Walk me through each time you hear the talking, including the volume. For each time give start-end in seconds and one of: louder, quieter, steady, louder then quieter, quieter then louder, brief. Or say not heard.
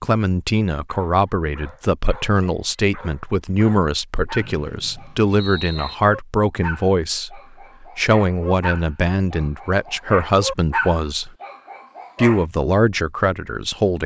0.0-11.3 steady
12.2-14.0 brief.